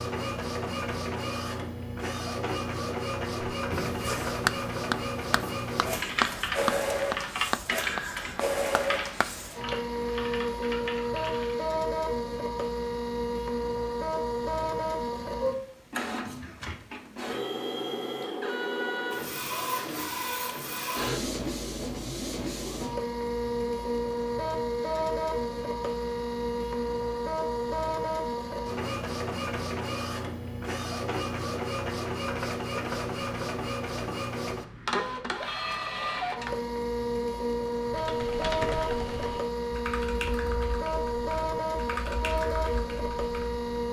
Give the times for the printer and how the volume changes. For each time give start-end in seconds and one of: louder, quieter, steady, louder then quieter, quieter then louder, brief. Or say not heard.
0.0-43.8 steady.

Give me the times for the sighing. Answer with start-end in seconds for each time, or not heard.
not heard.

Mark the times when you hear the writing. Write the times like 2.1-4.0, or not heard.
3.5-9.3.